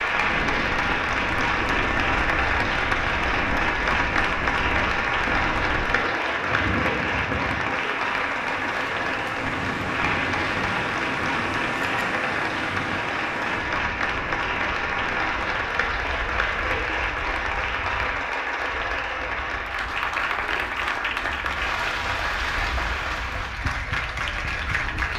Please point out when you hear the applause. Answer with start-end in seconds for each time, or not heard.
0.0-25.1.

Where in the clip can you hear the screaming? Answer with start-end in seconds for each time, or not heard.
not heard.